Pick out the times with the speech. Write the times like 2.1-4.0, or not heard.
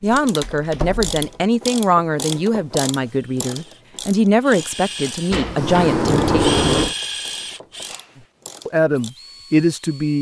0.0-6.5, 8.7-10.1.